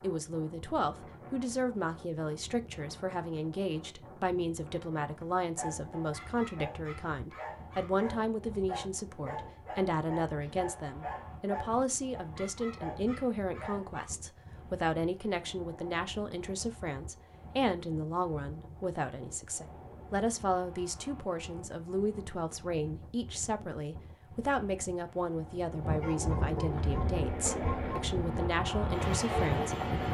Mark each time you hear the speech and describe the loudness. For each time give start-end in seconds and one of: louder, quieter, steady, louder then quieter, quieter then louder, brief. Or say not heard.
0.0-30.0 steady.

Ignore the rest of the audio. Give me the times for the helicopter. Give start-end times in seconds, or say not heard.
26.6-30.0.